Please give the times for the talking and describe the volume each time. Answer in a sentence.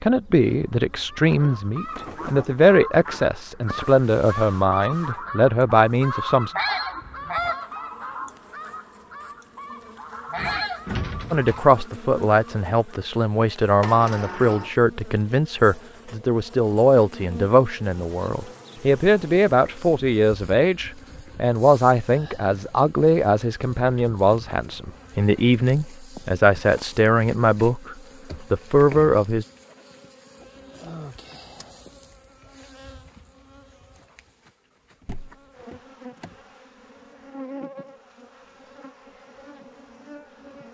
The talking can be heard from 0.0 to 6.5 s, at a steady volume; and from 11.3 to 29.4 s, at a steady volume.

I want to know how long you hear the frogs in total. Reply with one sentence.
You can't hear the frogs here.